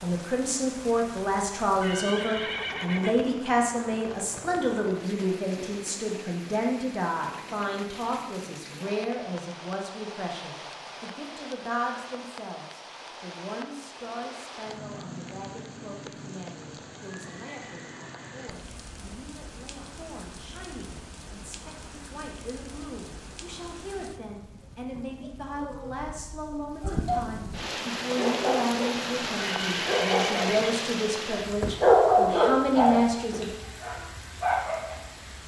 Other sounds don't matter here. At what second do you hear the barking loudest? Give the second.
32 s.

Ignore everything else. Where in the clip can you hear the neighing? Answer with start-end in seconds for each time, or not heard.
1.6-3.2, 17.2-18.5, 29.4-30.8.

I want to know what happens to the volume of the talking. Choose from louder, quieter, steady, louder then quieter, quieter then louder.
quieter then louder.